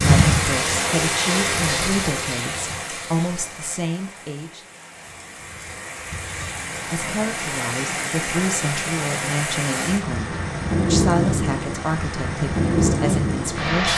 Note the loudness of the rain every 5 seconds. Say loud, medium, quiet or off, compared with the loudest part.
loud, medium, loud.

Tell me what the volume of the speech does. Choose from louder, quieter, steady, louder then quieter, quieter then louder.
steady.